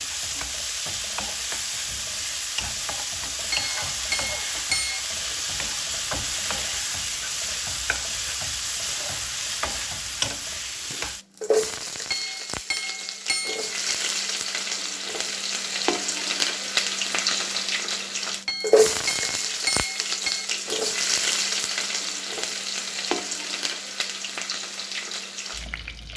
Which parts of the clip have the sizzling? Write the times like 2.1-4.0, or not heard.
0.0-26.1.